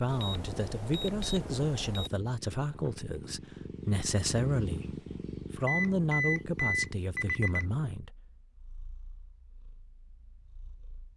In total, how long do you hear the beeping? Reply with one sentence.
The beeping can be heard for 4 seconds in total.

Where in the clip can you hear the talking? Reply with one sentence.
You can hear the talking from 0.0 to 4.8 s and from 5.5 to 8.1 s.